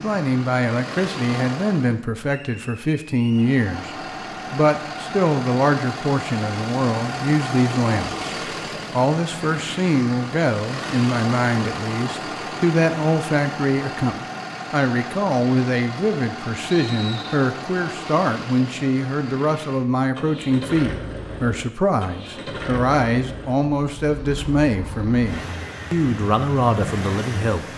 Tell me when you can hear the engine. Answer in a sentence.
The engine can be heard from 0.0 to 2.0 s and from 3.3 to 27.7 s.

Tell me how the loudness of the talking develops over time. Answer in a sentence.
The loudness of the talking stays about the same.